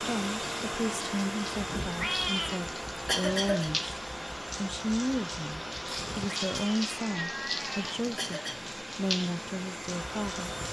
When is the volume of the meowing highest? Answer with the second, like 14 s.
2 s.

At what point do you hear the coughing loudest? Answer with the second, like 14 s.
3 s.